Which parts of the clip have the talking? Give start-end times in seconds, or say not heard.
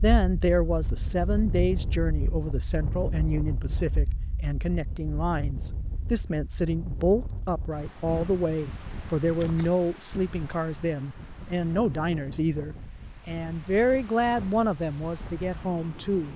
0.0-16.3.